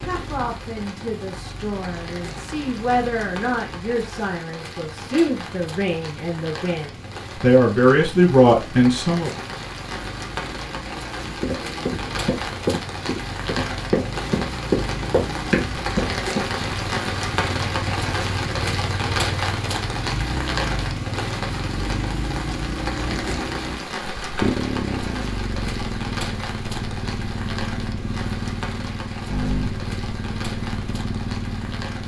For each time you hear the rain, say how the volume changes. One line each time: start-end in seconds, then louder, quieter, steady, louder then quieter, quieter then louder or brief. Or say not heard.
0.0-32.0 louder then quieter.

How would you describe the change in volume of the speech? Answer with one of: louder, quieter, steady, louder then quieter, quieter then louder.
louder.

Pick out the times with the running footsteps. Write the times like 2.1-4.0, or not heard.
11.4-16.4.